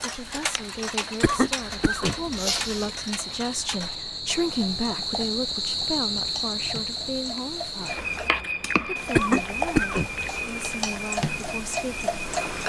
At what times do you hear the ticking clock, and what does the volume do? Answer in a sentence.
You can hear the ticking clock from 0.0 to 12.6 s, getting quieter then louder.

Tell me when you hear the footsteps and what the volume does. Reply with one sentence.
You can't hear the footsteps here.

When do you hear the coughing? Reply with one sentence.
You can hear the coughing from 1.2 to 2.9 s and from 9.2 to 10.4 s.